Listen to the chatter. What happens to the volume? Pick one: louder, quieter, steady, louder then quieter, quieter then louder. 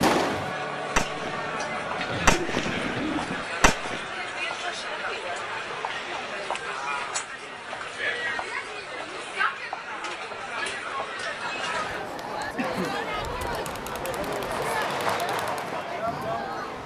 steady.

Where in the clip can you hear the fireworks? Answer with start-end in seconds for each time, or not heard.
0.0-4.0, 11.4-16.8.